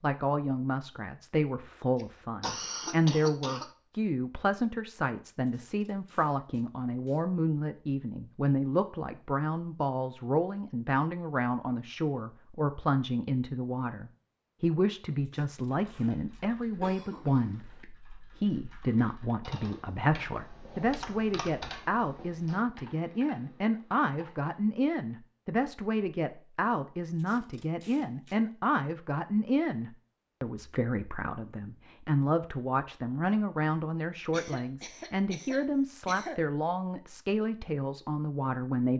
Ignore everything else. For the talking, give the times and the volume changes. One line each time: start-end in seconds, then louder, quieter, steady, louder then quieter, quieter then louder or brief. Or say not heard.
0.0-38.9 steady.